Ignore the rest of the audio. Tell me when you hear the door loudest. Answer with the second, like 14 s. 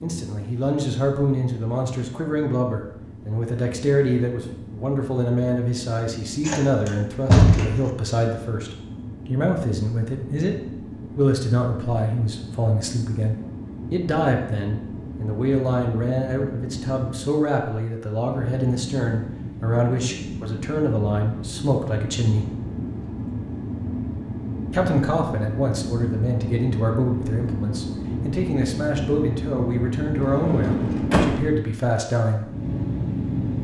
7 s.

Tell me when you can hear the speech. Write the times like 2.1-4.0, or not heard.
0.0-10.6, 11.2-22.4, 24.7-32.5.